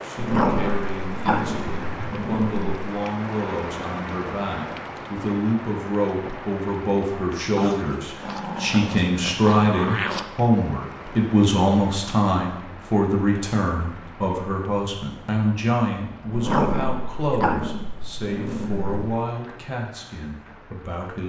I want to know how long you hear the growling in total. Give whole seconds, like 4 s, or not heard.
8 s.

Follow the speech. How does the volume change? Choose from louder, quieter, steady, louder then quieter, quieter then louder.
louder then quieter.